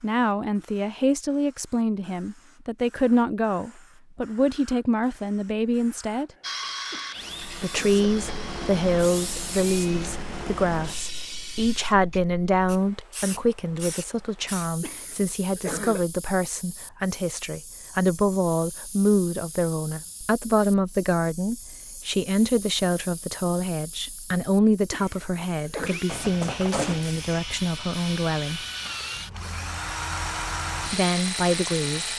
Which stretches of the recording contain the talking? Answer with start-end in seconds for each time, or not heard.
0.0-6.3, 7.5-28.6, 30.9-32.1.